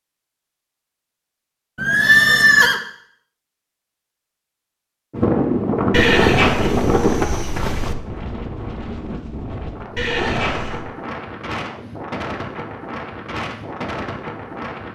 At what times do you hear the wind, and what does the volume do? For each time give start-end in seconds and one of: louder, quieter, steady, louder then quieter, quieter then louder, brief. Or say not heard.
5.1-14.8 quieter.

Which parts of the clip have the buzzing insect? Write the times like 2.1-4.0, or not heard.
not heard.